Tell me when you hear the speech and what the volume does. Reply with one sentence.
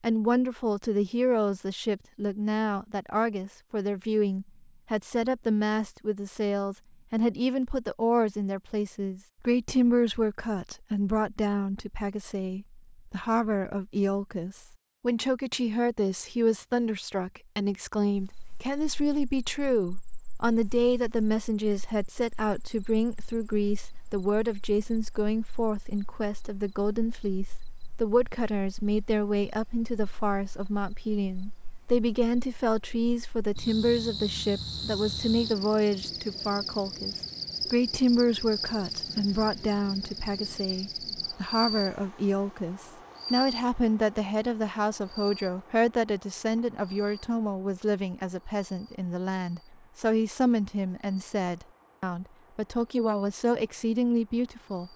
The speech can be heard from 0.0 to 54.9 s, at a steady volume.